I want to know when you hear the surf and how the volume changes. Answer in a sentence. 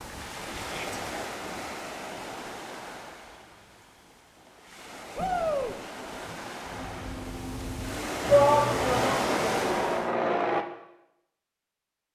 You can hear the surf from 0.0 to 10.2 s, getting quieter then louder.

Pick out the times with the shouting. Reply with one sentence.
The shouting can be heard from 0.6 to 1.0 s, from 5.2 to 5.8 s and from 8.2 to 9.2 s.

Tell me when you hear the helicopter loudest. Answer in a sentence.
The loudest moment of the helicopter is at 10 seconds.